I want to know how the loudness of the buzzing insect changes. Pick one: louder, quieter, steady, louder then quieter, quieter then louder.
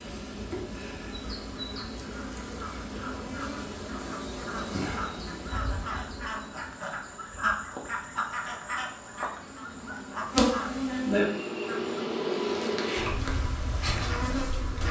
quieter then louder.